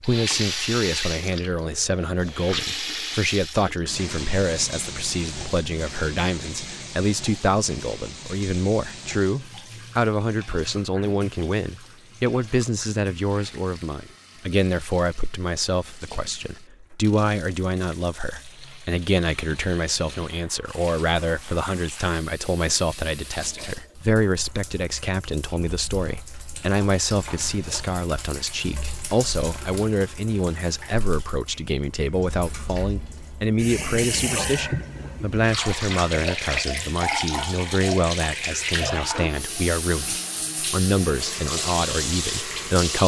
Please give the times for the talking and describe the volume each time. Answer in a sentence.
You can hear the talking from 0.0 to 43.0 s, at a steady volume.